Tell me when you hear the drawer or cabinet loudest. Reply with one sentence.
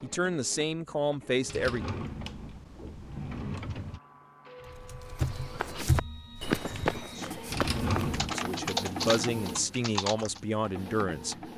The loudest moment of the drawer or cabinet is at 8 seconds.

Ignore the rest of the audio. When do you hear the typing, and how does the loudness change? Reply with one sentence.
You can hear the typing from 4.7 to 10.4 s, getting quieter then louder.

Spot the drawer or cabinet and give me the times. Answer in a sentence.
You can hear the drawer or cabinet from 1.4 to 4.0 s and from 7.5 to 8.3 s.